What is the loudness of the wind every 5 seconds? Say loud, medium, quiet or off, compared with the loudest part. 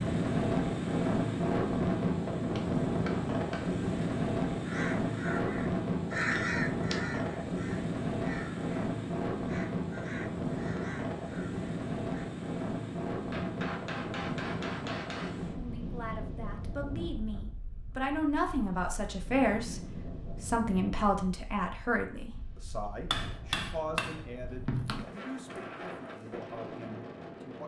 loud, loud, medium, quiet, quiet, quiet.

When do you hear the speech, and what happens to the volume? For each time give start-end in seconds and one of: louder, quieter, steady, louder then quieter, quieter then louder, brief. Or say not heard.
15.5-27.6 louder then quieter.